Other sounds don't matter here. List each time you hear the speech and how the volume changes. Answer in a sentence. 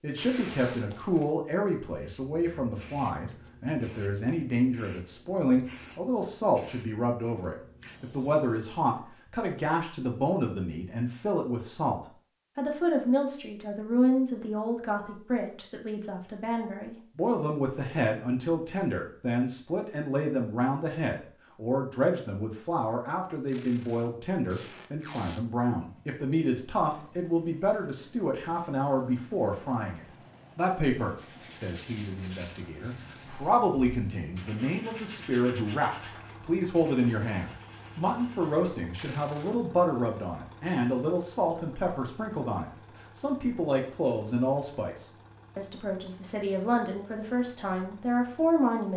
The speech can be heard from 0.0 to 48.9 s, at a steady volume.